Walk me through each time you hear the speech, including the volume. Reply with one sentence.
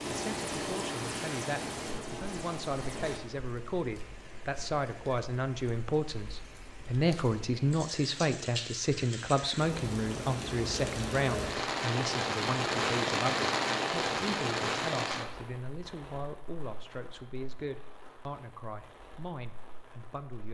You can hear the speech from 0.1 to 20.4 s, getting louder then quieter.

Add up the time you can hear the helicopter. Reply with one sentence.
The helicopter can be heard for 3 seconds in total.